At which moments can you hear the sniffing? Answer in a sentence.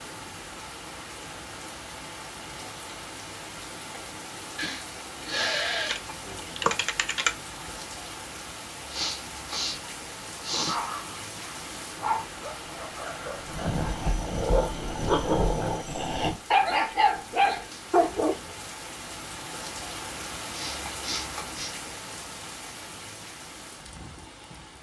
You can hear the sniffing from 4.5 to 6.0 s, from 8.9 to 9.8 s, from 10.4 to 10.8 s and from 20.5 to 21.7 s.